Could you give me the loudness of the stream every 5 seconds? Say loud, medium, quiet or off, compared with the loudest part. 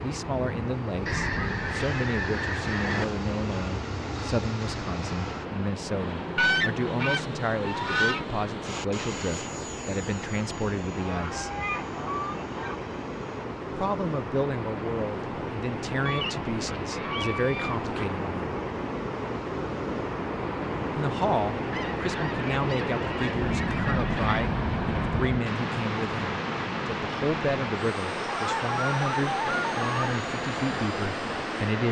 medium, medium, medium, loud, loud, loud, loud.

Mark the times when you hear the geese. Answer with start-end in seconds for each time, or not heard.
1.1-3.0, 6.3-8.2, 10.9-12.8, 16.1-18.1, 21.7-24.5, 28.2-30.1.